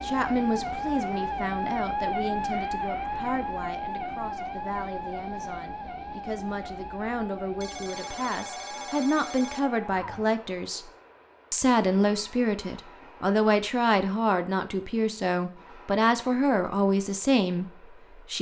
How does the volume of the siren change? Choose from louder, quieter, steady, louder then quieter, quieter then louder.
quieter.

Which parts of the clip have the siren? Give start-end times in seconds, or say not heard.
0.0-10.2.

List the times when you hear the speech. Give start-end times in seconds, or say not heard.
0.0-10.8, 11.5-18.3.